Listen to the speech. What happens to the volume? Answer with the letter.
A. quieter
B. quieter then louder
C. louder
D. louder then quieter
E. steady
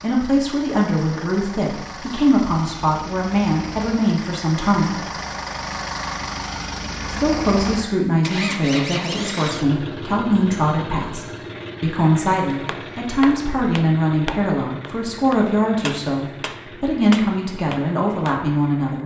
E.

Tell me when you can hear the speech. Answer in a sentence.
The speech can be heard from 0.0 to 5.0 s and from 7.0 to 19.0 s.